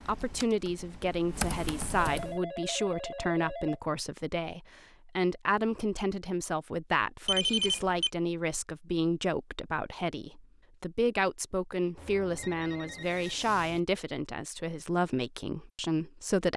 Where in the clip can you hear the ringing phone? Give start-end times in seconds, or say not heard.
2.0-3.8, 7.2-8.1, 11.9-13.8.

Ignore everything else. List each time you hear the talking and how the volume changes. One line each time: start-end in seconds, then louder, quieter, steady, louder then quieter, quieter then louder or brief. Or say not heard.
0.1-16.5 steady.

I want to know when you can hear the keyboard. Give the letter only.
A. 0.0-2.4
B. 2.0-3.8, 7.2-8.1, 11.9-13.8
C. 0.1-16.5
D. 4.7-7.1
A.